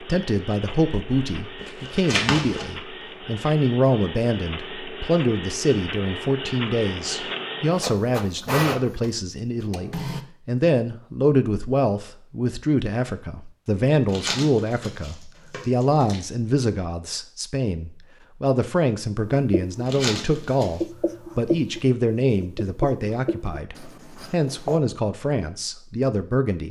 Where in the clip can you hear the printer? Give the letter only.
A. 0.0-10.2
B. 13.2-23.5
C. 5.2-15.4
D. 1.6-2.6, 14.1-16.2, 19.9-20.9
A.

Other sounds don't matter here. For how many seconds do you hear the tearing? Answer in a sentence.
The tearing can be heard for 4 seconds in total.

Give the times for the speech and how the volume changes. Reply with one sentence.
The speech can be heard from 0.0 to 26.6 s, at a steady volume.